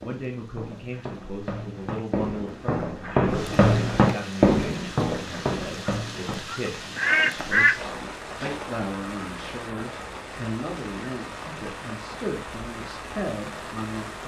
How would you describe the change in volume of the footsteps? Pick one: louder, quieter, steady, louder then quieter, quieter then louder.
louder then quieter.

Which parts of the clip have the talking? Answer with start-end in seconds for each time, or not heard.
0.0-14.2.